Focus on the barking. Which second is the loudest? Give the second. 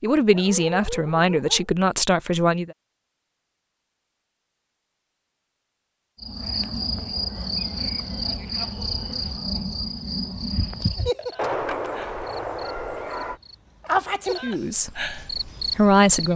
12 s.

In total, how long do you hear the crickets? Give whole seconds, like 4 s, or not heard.
10 s.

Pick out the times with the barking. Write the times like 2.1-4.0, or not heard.
0.3-1.6, 11.3-13.4.